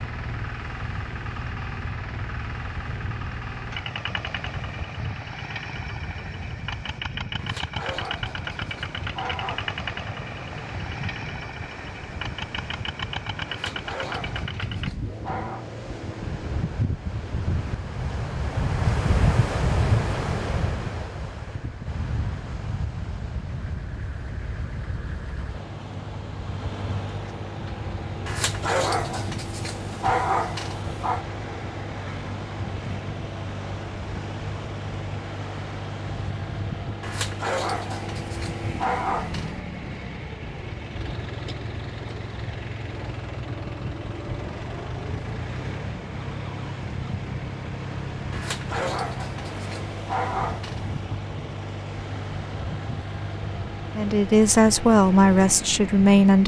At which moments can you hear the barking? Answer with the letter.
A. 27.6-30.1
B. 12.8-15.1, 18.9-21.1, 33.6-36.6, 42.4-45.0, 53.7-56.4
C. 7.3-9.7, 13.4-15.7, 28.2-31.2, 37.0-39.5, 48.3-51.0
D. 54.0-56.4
C.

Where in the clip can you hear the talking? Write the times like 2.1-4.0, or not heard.
54.0-56.4.